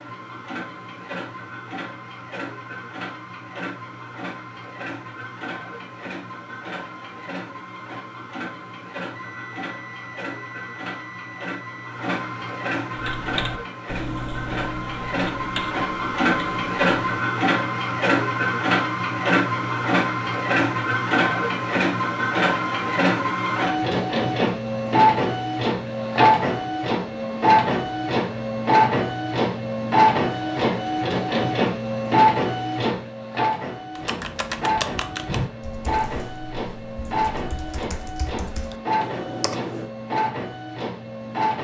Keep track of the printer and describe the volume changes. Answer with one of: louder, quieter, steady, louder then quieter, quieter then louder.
louder then quieter.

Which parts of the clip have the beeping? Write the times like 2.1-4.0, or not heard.
9.2-11.9.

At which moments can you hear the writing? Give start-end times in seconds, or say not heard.
not heard.